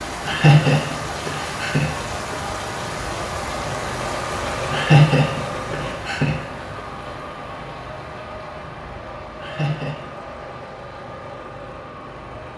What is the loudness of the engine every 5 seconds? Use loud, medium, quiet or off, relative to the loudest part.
loud, loud, medium.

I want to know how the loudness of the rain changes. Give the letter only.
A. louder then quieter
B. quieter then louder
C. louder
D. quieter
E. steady
D.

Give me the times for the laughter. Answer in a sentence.
The laughter can be heard from 0.2 to 2.4 s, from 4.7 to 6.4 s and from 9.4 to 10.4 s.